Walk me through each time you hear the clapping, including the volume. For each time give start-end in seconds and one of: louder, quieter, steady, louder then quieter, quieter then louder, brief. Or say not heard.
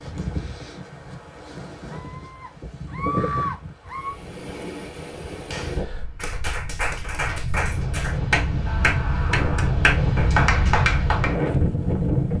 5.5-11.5 louder.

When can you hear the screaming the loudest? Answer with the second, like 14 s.
3 s.